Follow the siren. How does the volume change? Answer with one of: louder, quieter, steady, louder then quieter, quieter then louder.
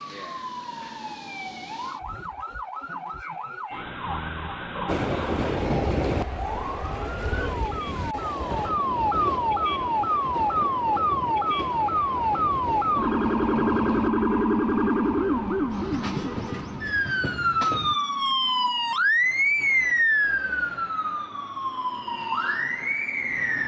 louder.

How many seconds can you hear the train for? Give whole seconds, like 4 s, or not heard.
13 s.